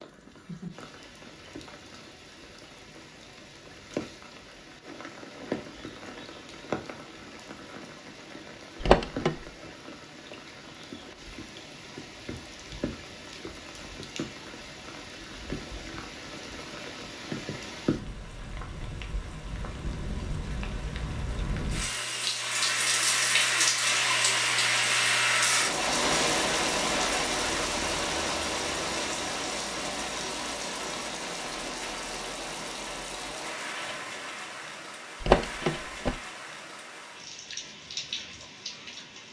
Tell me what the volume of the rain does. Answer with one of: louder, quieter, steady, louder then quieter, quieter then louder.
louder then quieter.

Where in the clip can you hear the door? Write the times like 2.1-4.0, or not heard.
8.8-9.5, 35.2-36.1.